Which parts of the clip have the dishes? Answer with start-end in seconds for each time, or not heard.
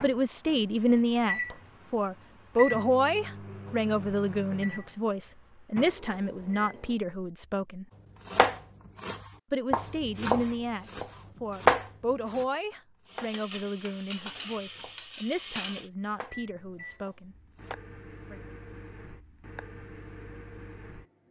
not heard.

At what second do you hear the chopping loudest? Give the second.
12 s.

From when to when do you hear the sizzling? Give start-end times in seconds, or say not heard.
13.1-15.9.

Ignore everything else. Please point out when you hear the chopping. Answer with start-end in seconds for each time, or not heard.
8.2-17.8.